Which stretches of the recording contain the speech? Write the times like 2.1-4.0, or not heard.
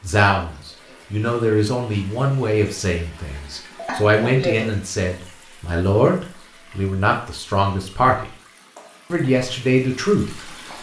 0.0-8.3, 9.1-10.5.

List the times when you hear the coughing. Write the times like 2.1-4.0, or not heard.
3.8-4.8.